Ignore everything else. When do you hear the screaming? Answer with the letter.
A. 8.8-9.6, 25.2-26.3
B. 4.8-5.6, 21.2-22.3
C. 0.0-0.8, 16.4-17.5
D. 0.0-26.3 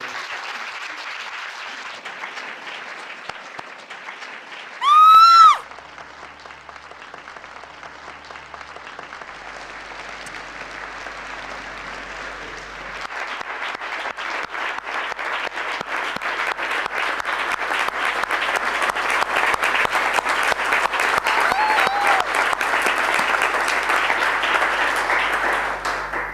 B.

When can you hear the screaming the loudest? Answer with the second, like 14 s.
5 s.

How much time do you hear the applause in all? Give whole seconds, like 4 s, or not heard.
26 s.